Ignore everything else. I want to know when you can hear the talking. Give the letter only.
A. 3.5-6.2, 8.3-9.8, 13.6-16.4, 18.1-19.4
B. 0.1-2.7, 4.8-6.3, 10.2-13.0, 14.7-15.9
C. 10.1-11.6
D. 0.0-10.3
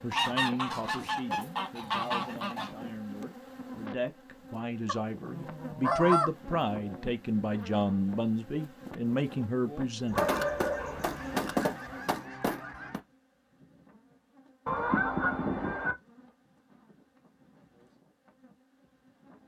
D.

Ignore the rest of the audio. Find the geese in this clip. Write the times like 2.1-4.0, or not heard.
0.1-2.7, 4.8-6.3, 10.2-13.0, 14.7-15.9.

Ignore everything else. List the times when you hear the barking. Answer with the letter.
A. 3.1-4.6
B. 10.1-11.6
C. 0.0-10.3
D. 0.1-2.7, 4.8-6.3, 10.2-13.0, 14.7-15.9
B.